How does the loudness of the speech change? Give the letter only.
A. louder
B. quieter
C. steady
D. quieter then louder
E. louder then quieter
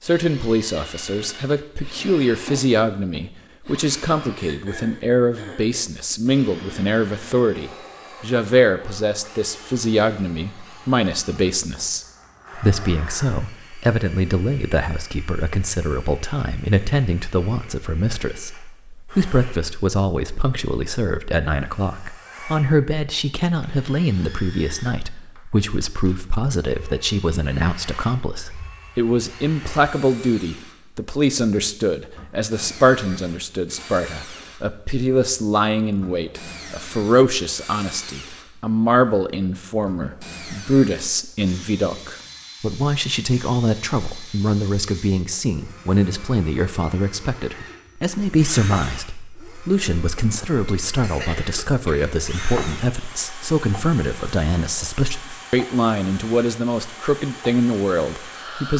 C.